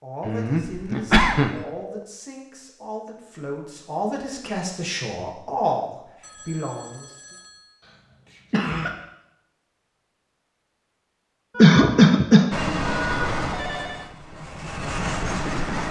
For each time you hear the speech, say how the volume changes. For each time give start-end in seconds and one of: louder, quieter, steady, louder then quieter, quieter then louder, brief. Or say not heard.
0.0-7.3 louder.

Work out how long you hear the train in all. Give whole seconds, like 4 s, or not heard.
3 s.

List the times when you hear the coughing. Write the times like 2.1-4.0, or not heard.
0.2-1.6, 8.5-8.9, 11.6-13.3.